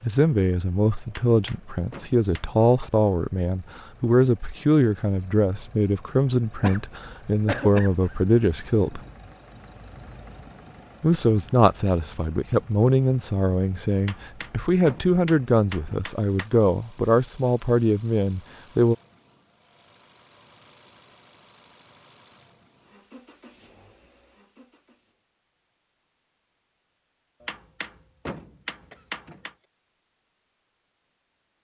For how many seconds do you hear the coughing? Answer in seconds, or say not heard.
2 s.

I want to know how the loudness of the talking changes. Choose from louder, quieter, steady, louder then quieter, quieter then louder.
steady.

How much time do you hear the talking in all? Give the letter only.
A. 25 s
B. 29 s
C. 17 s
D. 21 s
C.